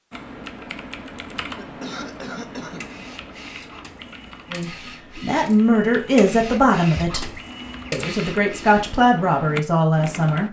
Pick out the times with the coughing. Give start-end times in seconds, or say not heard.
1.6-2.9.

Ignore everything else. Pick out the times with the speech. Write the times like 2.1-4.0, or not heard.
4.5-7.3, 7.9-10.4.